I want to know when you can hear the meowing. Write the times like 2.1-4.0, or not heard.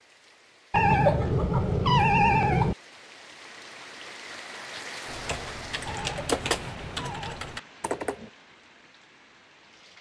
0.7-2.8, 5.8-7.4.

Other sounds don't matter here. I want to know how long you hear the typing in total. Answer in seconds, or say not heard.
3 s.